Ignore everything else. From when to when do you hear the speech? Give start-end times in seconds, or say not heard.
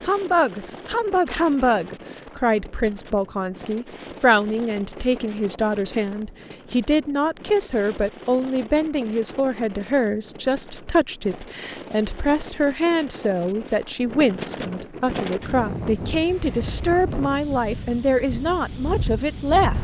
0.0-19.7.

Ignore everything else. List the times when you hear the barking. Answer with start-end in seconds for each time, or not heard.
not heard.